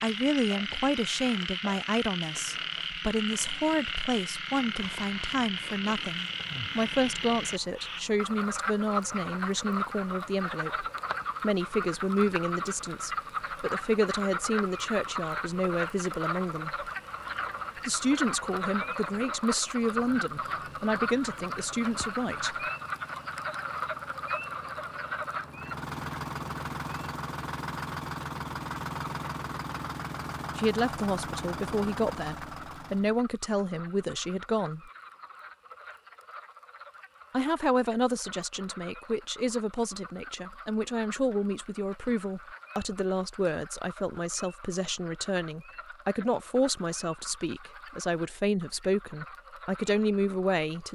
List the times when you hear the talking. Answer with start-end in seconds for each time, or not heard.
0.0-16.9, 17.9-22.6, 30.6-34.9, 37.3-50.9.